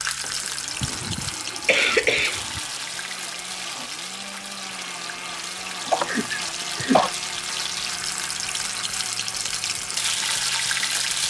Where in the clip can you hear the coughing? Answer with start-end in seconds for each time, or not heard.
0.8-2.6, 5.9-7.2.